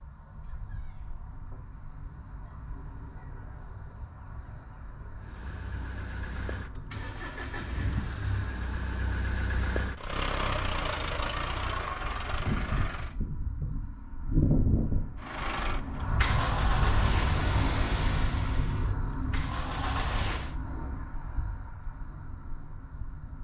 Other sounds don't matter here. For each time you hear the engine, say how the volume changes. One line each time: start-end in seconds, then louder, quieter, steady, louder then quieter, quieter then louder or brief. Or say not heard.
5.2-13.2 louder
15.2-20.6 quieter then louder.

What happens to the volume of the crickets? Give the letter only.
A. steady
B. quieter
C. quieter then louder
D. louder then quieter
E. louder
D.